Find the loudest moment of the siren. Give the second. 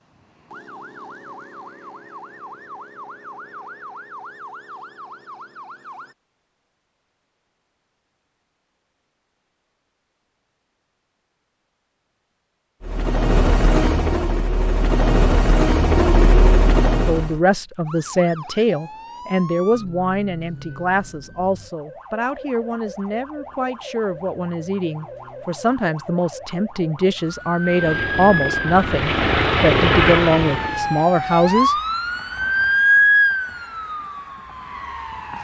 33 s.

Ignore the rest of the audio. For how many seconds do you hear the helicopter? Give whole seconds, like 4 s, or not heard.
8 s.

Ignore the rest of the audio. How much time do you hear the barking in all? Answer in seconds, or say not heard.
not heard.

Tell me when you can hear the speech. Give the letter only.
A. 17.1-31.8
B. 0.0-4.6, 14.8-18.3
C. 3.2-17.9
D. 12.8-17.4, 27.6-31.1
A.